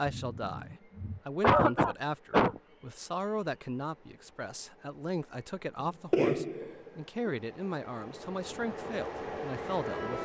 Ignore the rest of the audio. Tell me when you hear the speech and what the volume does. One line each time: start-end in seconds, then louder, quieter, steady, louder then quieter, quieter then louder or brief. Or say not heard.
0.0-10.1 steady.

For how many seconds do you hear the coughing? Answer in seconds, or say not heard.
4 s.